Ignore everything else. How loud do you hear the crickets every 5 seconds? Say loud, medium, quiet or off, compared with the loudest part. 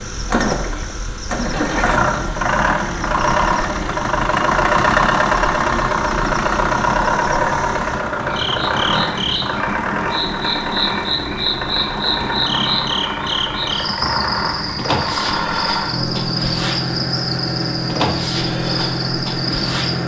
medium, medium, loud, loud.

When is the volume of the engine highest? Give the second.
5 s.